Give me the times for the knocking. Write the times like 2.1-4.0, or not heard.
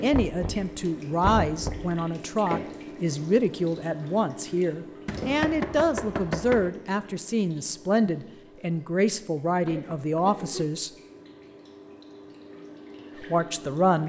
0.1-1.9, 5.0-6.7, 9.7-10.7.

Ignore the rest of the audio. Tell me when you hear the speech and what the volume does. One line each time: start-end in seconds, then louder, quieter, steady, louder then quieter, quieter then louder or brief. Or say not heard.
0.0-10.9 steady
13.2-14.0 brief.